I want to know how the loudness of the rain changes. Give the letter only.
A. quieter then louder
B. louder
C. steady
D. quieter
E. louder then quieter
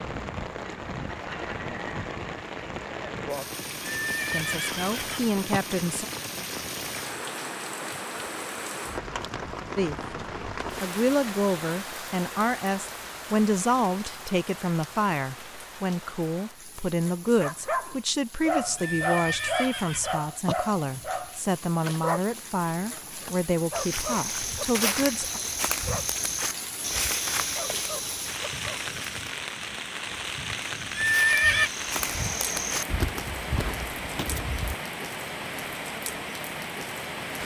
A.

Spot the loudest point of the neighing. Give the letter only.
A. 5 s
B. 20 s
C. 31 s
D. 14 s
C.